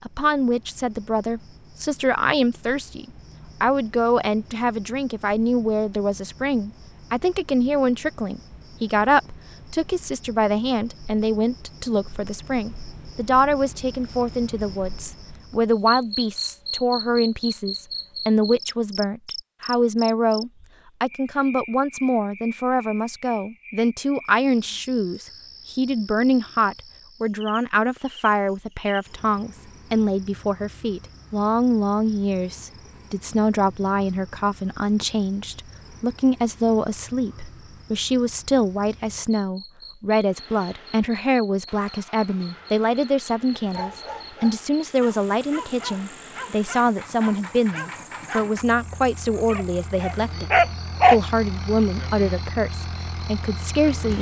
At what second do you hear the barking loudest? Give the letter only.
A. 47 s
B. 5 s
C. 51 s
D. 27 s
C.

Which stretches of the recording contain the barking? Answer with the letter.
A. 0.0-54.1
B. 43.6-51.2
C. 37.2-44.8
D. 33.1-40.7
B.